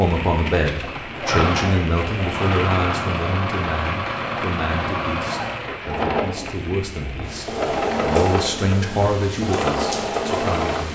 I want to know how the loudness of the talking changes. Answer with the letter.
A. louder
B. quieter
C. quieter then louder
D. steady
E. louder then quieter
C.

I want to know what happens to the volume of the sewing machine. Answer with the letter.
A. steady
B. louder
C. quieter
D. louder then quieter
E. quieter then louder
A.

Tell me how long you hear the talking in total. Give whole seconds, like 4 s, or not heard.
11 s.